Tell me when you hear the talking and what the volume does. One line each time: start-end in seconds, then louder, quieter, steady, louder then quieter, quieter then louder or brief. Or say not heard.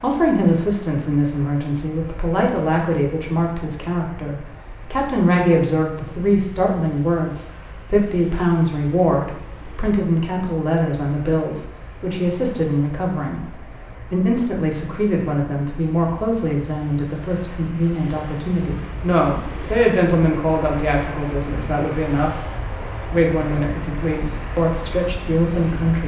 0.0-26.0 steady.